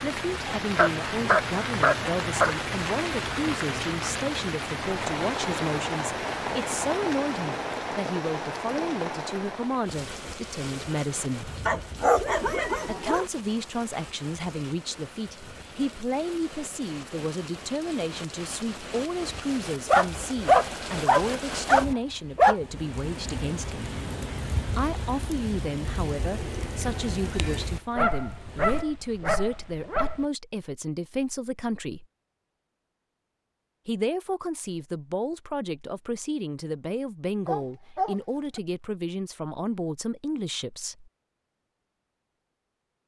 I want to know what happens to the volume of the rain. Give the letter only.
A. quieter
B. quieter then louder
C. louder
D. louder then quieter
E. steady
B.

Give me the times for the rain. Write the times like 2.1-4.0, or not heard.
0.0-28.9.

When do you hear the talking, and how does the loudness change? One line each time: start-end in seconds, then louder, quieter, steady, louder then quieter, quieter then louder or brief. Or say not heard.
0.0-11.5 steady
12.8-23.9 steady
24.6-32.0 steady
33.9-41.1 steady.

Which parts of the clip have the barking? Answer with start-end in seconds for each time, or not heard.
0.8-2.5, 11.7-13.2, 19.9-22.6, 27.9-30.2, 37.5-38.6.